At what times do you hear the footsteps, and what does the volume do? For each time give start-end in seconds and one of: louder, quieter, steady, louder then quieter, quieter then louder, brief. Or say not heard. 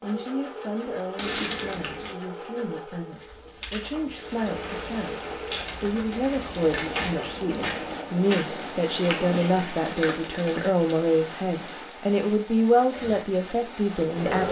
3.1-9.8 louder.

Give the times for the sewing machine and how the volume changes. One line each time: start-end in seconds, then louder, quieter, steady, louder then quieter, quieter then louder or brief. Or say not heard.
0.0-5.6 quieter then louder
12.8-14.4 brief.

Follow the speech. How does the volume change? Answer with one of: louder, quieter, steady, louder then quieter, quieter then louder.
louder.